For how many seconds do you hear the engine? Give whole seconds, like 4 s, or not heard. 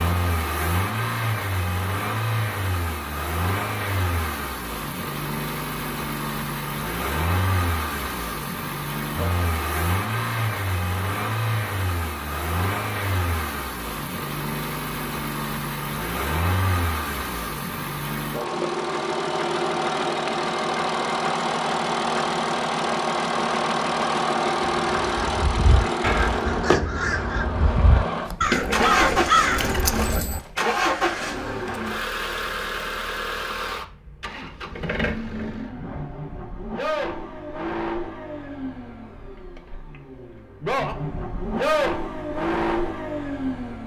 44 s.